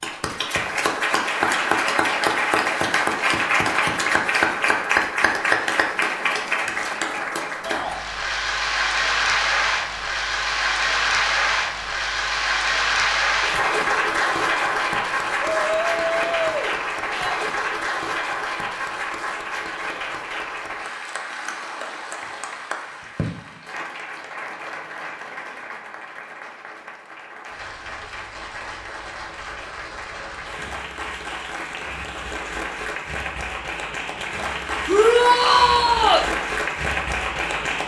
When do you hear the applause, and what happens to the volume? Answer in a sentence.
The applause can be heard from 0.0 to 37.8 s, getting quieter then louder.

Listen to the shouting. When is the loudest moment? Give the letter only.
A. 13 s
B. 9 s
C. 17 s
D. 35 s
D.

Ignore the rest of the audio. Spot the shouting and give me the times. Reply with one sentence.
The shouting can be heard from 7.6 to 8.0 s, from 15.6 to 17.4 s and from 34.9 to 36.2 s.